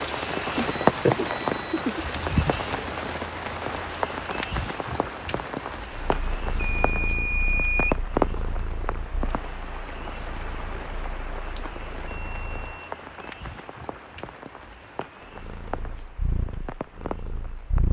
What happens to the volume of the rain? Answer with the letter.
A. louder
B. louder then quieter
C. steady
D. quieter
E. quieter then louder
D.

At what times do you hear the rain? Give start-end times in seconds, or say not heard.
0.0-17.8.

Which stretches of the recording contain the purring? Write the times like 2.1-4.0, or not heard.
6.0-12.8, 15.2-17.8.